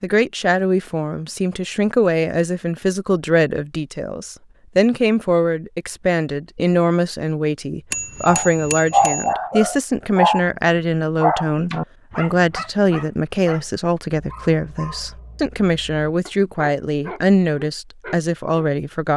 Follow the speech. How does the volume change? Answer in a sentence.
The volume of the speech stays about the same.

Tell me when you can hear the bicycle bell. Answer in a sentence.
The bicycle bell can be heard from 7.9 to 9.3 s.